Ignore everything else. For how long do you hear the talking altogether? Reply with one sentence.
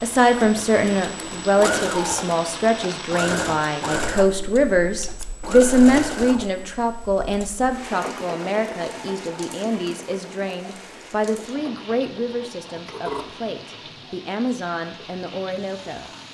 You can hear the talking for 16 seconds altogether.